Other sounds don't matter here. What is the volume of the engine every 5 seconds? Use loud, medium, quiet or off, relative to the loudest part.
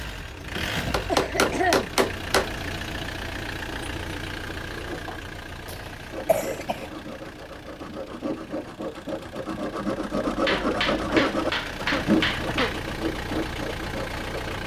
loud, medium, loud.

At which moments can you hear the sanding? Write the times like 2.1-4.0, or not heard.
6.1-14.6.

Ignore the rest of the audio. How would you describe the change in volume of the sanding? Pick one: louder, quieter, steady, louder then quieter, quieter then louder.
louder then quieter.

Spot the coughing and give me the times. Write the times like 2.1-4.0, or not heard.
0.6-1.9, 5.7-6.9, 10.5-12.8.